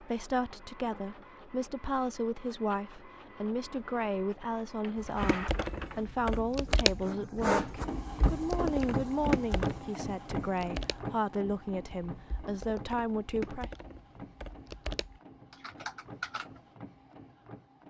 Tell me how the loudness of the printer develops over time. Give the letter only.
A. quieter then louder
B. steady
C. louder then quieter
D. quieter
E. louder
C.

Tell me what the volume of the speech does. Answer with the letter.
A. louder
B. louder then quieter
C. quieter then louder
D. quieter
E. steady
E.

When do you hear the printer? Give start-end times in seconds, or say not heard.
0.0-17.8.